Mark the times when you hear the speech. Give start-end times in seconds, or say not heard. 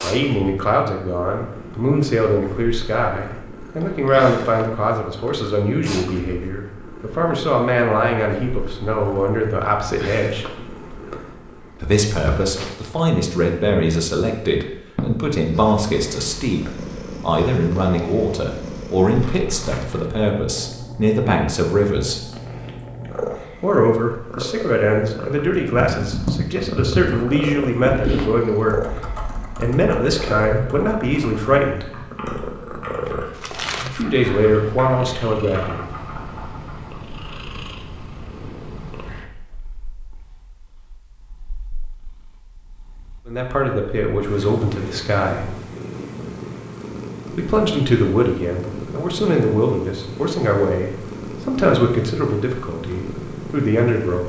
0.0-10.4, 11.8-22.2, 23.6-31.9, 33.9-35.9, 43.2-45.5, 47.3-54.2.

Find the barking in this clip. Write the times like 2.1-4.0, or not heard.
not heard.